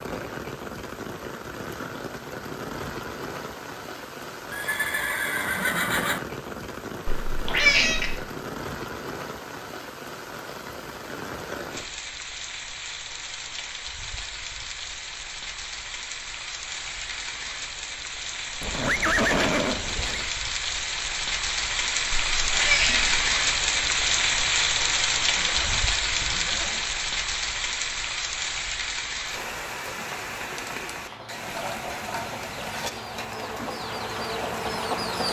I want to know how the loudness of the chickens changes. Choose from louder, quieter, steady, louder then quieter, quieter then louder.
louder.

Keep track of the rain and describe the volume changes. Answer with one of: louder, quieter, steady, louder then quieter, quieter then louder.
louder then quieter.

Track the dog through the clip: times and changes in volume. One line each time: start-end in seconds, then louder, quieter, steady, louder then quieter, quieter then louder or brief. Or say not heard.
not heard.